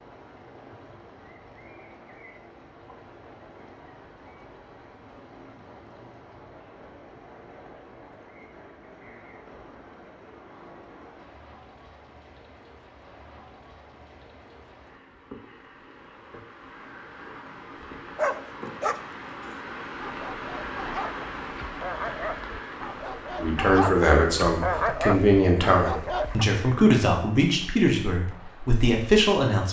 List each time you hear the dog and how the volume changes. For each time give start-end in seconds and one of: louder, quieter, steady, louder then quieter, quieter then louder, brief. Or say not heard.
18.1-26.4 quieter then louder.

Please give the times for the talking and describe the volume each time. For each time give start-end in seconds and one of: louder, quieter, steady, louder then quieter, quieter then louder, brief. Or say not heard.
23.4-29.6 steady.